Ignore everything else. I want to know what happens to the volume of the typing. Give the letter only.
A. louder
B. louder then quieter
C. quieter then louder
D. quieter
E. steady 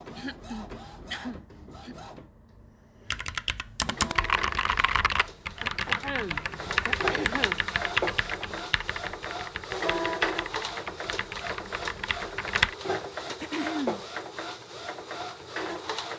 D.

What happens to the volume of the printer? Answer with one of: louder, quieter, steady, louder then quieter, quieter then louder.
louder.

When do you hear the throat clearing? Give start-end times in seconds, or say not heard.
0.1-1.9, 5.6-7.6, 13.3-14.4.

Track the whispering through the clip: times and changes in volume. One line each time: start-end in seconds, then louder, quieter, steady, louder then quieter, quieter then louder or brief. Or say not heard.
not heard.